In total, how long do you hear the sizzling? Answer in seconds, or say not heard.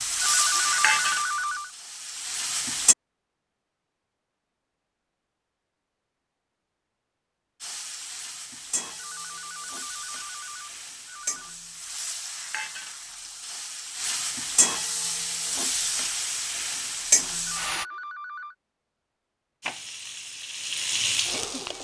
15 s.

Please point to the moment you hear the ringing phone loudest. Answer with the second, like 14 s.
1 s.